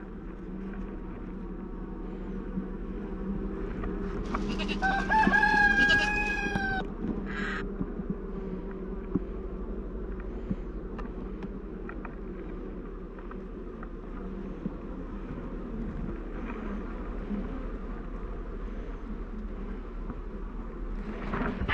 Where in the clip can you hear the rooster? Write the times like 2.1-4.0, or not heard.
4.8-6.8.